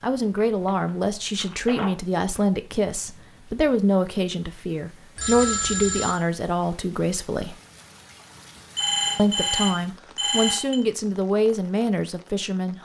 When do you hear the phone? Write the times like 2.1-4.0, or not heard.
0.3-1.9, 5.2-6.2, 8.8-10.8.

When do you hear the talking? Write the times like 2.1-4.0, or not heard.
0.0-7.5, 9.2-12.7.